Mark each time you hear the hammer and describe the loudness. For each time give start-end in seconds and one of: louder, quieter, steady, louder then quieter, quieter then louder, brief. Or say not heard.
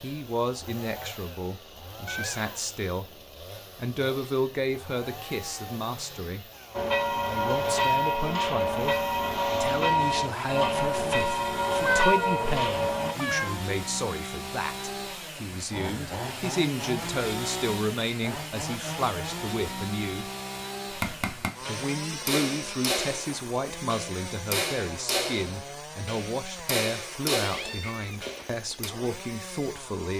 20.9-28.9 steady.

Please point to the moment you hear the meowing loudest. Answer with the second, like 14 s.
12 s.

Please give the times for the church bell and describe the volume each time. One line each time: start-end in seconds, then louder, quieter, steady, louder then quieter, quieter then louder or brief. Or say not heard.
6.7-13.2 steady.